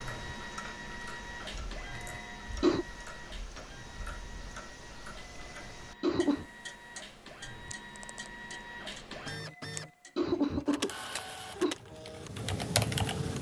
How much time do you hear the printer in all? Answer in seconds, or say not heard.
13 s.